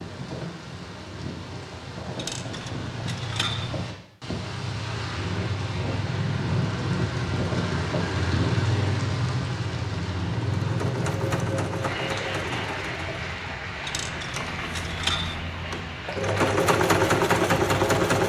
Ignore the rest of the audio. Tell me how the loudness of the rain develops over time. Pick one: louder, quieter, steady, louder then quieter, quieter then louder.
louder then quieter.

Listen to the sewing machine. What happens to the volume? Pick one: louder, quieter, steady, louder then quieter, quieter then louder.
quieter then louder.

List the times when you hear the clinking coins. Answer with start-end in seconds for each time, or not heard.
2.1-3.8, 13.8-15.4.